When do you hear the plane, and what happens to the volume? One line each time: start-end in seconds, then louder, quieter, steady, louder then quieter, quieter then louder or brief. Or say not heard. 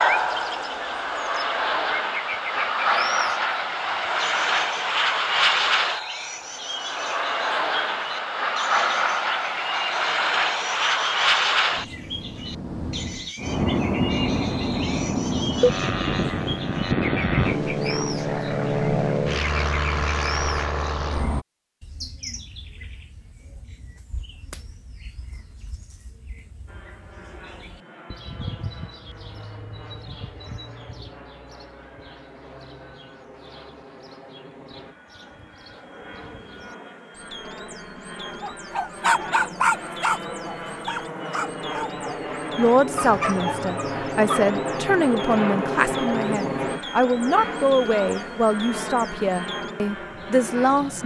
0.0-21.4 steady
26.6-51.0 louder.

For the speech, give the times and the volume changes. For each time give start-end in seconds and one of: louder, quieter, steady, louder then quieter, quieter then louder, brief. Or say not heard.
42.5-51.0 steady.